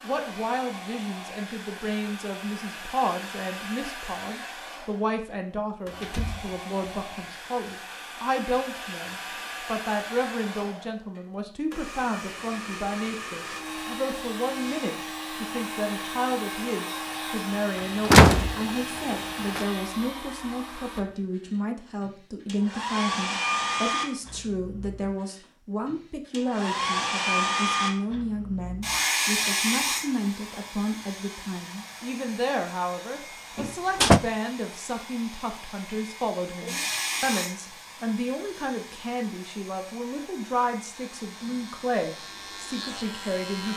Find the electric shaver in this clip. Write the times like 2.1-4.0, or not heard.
41.0-43.7.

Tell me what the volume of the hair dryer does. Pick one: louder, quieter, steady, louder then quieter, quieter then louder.
louder then quieter.